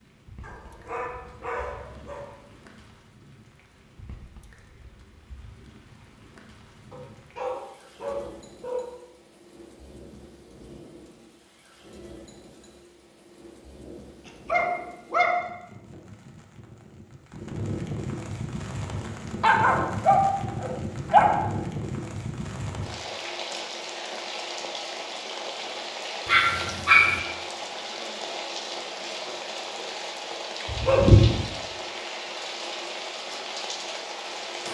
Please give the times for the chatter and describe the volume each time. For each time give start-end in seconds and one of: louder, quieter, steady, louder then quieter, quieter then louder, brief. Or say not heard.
not heard.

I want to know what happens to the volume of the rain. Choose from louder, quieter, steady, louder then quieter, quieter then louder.
louder.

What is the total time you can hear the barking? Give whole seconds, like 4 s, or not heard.
9 s.